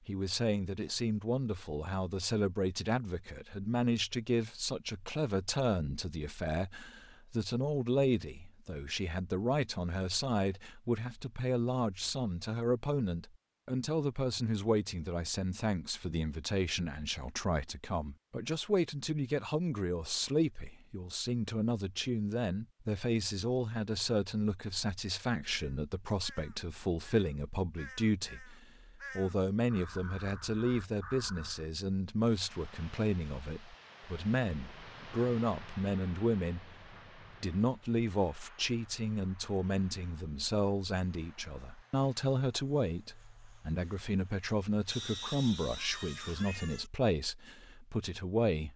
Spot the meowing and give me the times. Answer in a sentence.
The meowing can be heard from 44.9 to 46.9 s.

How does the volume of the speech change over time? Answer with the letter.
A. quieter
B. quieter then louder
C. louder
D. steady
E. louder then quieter
D.